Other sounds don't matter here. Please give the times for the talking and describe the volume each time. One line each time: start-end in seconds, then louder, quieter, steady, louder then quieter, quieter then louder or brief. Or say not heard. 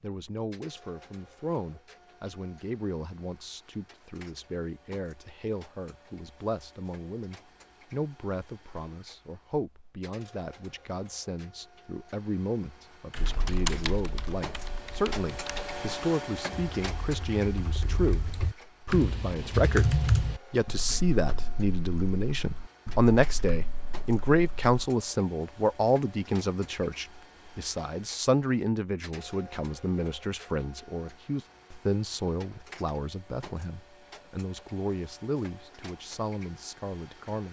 0.0-37.4 louder then quieter.